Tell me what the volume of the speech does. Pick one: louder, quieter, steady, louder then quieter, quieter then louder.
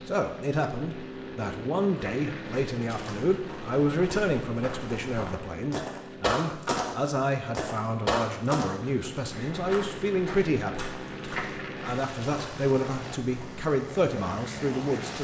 steady.